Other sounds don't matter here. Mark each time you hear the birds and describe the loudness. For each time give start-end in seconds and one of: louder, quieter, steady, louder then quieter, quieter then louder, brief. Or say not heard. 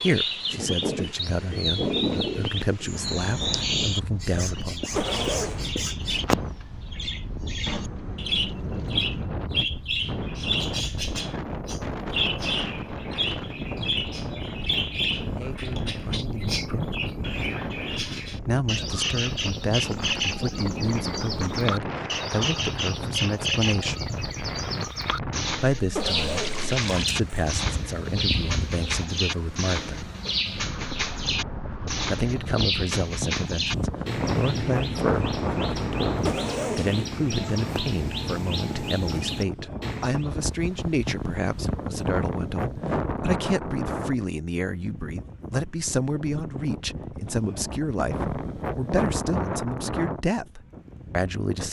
0.0-40.3 steady.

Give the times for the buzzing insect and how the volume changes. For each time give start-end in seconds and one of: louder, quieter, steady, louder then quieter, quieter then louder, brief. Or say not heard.
not heard.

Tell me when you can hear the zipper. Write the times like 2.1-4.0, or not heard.
5.0-5.6, 25.9-27.6, 36.2-37.1.